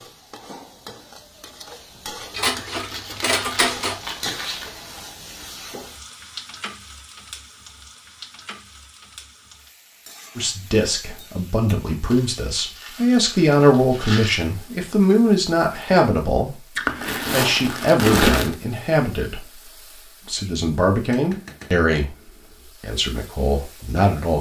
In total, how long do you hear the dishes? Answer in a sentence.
The dishes can be heard for 2 seconds in total.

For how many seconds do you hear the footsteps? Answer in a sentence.
The footsteps can't be heard in this clip.